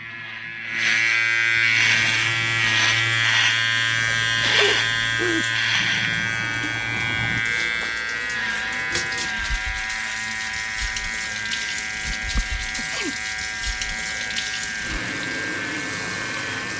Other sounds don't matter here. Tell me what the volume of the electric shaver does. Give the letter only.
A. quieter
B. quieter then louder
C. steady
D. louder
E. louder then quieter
A.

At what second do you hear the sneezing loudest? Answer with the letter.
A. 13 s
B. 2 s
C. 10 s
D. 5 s
D.